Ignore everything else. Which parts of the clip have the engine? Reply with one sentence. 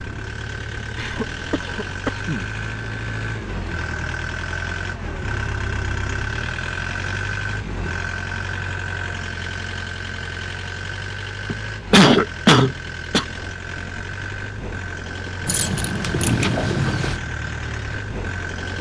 You can hear the engine from 0.0 to 18.7 s.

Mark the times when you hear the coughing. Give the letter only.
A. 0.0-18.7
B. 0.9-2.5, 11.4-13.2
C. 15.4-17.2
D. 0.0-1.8
B.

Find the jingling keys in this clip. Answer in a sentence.
The jingling keys can be heard from 15.4 to 17.2 s.